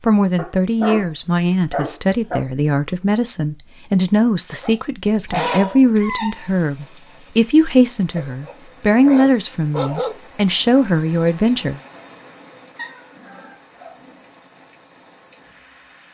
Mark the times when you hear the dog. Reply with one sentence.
You can hear the dog from 0.3 to 2.5 s, from 4.6 to 6.5 s, from 8.2 to 10.2 s and from 12.8 to 14.2 s.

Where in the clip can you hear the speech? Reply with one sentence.
You can hear the speech from 0.0 to 11.8 s.